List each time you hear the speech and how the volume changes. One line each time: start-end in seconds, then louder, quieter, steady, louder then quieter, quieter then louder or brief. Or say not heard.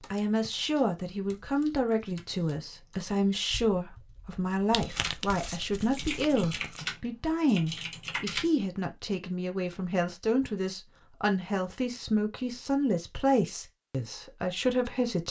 0.1-15.2 steady.